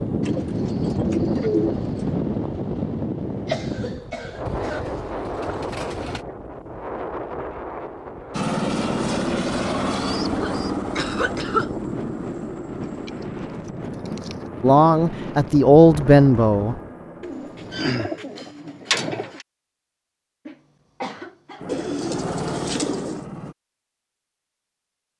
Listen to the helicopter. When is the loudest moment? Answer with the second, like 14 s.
9 s.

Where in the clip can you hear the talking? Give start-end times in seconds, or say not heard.
14.6-16.8.